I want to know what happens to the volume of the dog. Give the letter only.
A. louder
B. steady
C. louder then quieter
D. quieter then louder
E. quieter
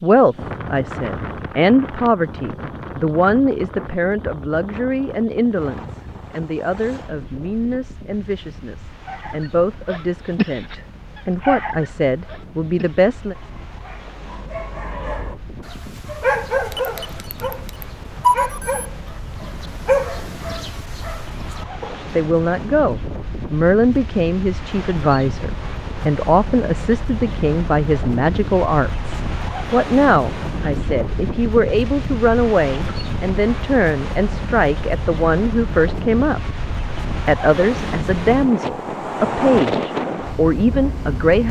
D.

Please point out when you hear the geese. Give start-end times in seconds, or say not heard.
not heard.